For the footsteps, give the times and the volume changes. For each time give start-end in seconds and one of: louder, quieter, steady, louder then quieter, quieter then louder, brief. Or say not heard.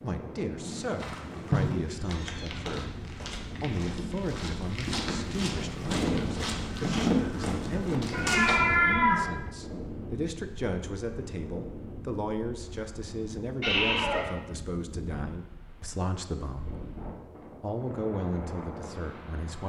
0.6-8.6 louder.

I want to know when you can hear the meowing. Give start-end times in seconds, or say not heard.
1.5-2.8, 8.1-9.3, 13.6-14.2.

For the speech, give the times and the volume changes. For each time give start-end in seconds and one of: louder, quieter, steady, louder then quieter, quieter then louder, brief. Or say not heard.
0.0-16.9 steady
17.6-19.6 brief.